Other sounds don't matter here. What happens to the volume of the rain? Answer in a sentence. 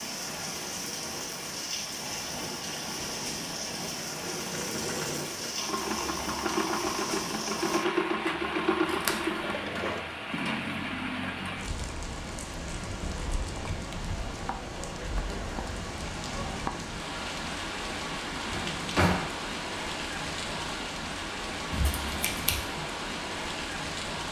The volume of the rain stays about the same.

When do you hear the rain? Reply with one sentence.
You can hear the rain from 0.0 to 24.2 s.